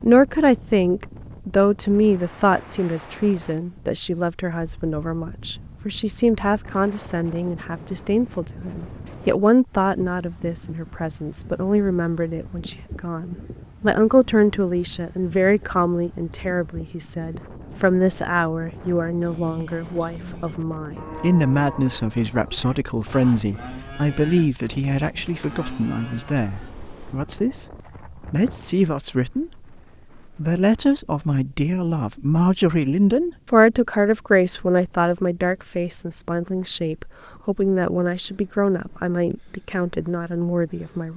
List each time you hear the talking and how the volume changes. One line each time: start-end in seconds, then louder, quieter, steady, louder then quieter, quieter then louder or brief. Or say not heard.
0.0-41.1 steady.